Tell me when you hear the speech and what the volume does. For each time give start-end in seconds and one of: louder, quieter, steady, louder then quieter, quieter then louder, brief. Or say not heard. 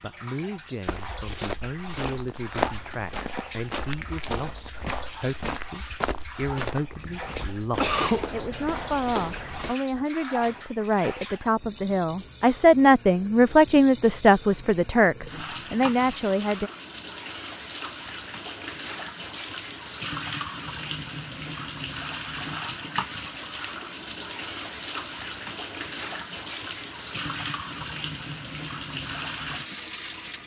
0.0-16.7 louder.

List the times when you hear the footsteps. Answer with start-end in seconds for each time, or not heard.
0.8-10.1.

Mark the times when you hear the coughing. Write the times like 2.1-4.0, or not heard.
7.0-8.2.